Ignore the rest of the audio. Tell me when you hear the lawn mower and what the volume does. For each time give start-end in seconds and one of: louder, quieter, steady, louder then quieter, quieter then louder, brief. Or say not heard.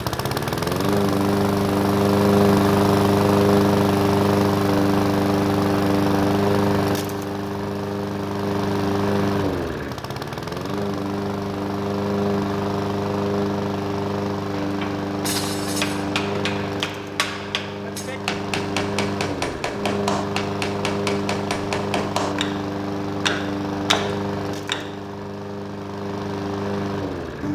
0.0-27.4 quieter.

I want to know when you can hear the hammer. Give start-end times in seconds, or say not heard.
14.5-25.1.